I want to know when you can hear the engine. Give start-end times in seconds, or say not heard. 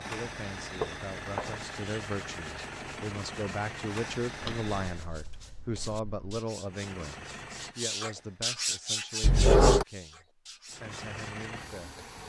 0.0-5.1, 6.6-8.6, 10.7-12.2.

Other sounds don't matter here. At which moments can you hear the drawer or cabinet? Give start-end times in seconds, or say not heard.
0.8-1.6, 4.4-6.4, 9.2-9.8.